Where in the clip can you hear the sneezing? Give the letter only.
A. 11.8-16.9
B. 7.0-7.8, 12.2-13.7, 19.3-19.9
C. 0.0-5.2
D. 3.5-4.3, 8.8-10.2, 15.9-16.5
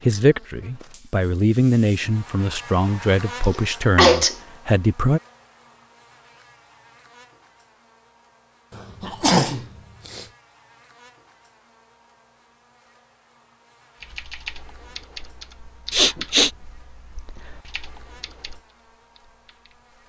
D.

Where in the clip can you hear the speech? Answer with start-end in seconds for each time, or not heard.
0.0-5.2.